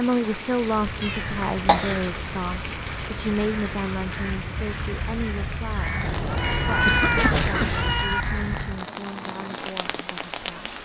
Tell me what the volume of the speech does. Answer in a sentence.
The loudness of the speech goes down.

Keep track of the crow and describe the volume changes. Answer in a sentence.
The loudness of the crow goes up.